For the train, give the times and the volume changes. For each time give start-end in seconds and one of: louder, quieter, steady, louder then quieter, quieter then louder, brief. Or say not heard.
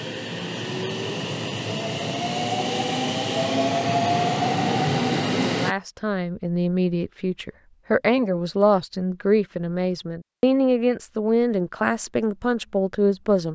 0.0-5.8 louder.